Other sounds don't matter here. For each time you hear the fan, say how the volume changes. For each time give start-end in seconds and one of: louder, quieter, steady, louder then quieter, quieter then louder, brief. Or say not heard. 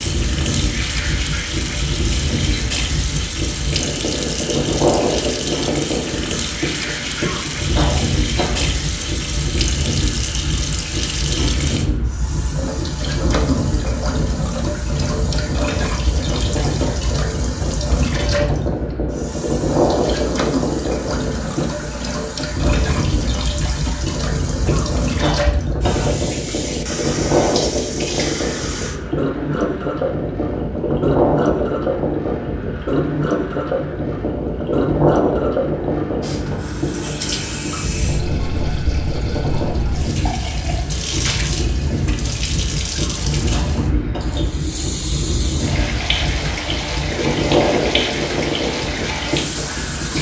0.0-50.1 steady.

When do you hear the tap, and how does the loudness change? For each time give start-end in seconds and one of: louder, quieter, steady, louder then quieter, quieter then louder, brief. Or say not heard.
0.0-50.1 steady.